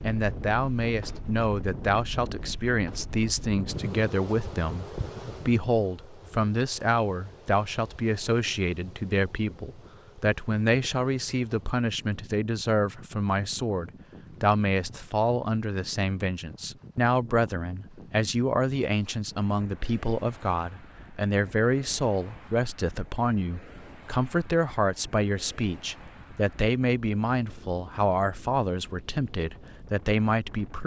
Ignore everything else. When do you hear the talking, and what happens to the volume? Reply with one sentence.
You can hear the talking from 0.0 to 30.8 s, at a steady volume.